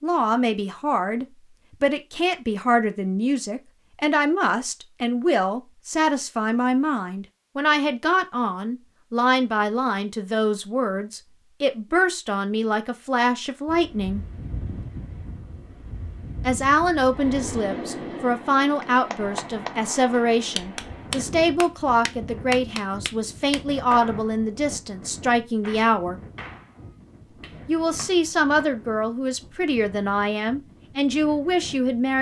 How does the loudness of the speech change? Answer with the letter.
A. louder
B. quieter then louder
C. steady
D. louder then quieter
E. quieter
C.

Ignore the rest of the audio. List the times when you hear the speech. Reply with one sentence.
You can hear the speech from 0.0 to 14.2 s, from 16.4 to 26.1 s and from 27.6 to 32.1 s.